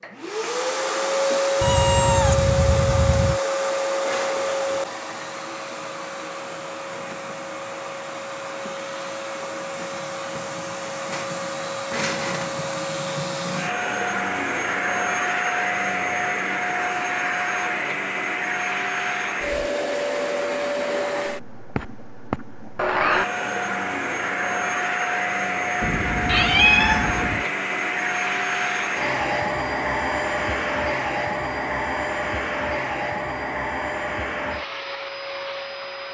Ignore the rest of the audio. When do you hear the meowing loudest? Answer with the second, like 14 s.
27 s.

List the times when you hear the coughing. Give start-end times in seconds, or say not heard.
not heard.